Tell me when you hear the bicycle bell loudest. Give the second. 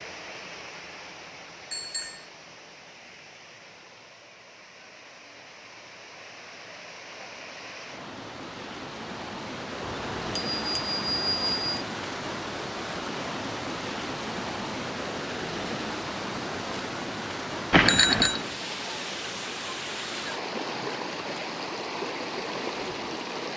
18 s.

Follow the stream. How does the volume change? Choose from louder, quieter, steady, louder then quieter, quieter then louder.
louder.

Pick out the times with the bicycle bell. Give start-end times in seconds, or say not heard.
1.7-2.2, 9.8-11.8, 17.7-18.4.